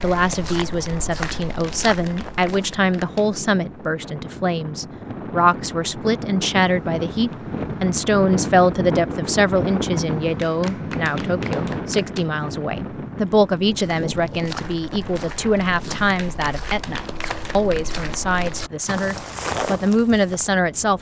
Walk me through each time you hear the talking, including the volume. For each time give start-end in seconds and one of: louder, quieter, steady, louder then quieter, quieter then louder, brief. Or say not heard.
0.0-20.9 steady.